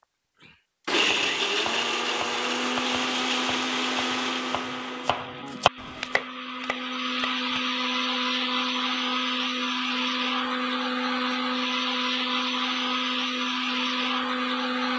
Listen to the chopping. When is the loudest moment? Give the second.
6 s.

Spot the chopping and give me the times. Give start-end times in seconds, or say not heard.
1.1-7.6.